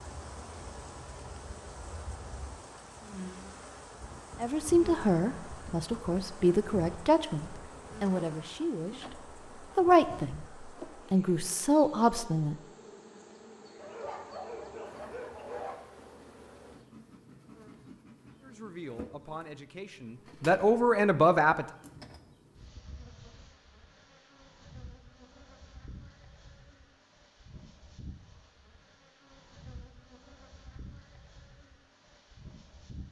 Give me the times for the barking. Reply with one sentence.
You can hear the barking from 13.8 to 15.8 s.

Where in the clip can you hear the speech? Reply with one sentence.
You can hear the speech from 4.4 to 10.4 s, from 11.1 to 12.6 s and from 18.4 to 21.6 s.